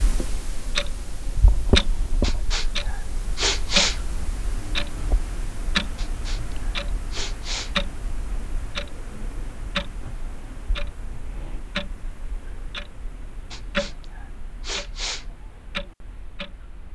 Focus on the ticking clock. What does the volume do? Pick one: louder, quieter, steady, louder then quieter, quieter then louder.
quieter.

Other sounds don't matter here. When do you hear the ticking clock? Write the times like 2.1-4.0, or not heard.
0.0-16.8.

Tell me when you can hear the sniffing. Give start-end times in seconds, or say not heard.
2.2-4.0, 6.0-7.8, 13.5-15.2.